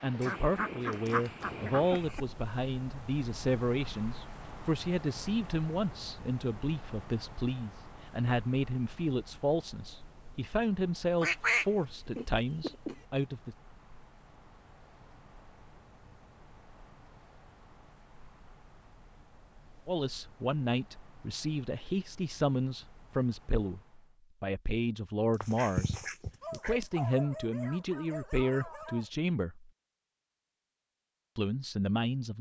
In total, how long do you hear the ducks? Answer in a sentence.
The ducks can be heard for 5 seconds in total.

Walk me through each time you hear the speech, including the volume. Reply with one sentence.
The speech can be heard from 0.0 to 13.6 s, at a steady volume; from 19.9 to 29.7 s, at a steady volume; and briefly from 31.4 to 32.3 s.